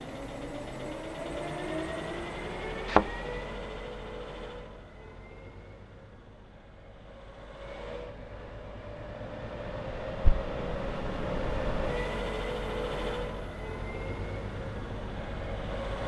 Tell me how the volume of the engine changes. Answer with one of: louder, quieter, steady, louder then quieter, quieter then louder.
quieter then louder.